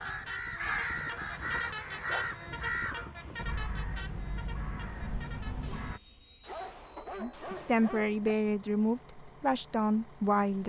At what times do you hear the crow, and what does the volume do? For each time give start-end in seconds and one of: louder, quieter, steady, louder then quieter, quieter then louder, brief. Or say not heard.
0.0-6.0 quieter.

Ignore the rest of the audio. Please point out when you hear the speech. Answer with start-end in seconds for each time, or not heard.
7.2-10.6.